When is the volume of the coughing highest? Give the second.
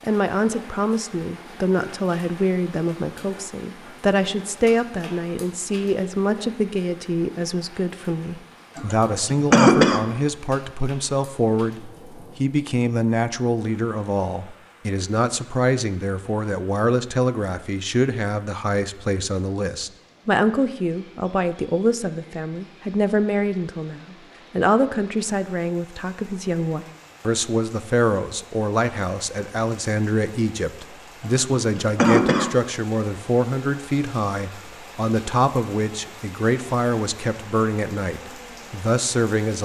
10 s.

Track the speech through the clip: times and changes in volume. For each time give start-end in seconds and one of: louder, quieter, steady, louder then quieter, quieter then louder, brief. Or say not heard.
0.0-39.6 steady.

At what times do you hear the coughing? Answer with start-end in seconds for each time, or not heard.
8.8-10.0, 31.2-32.5.